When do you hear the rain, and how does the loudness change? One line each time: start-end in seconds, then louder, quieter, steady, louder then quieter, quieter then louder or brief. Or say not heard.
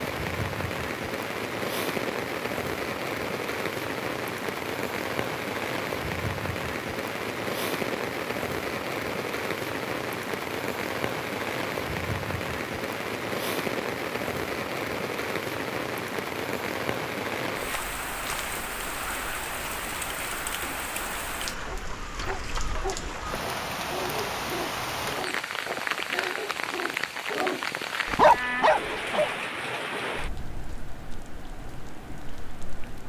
0.0-33.0 steady.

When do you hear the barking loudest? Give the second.
28 s.